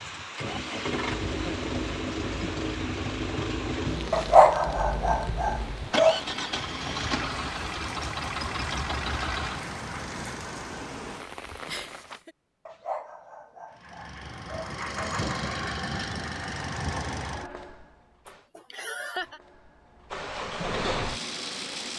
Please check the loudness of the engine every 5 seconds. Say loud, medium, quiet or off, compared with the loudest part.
loud, loud, medium, loud, loud.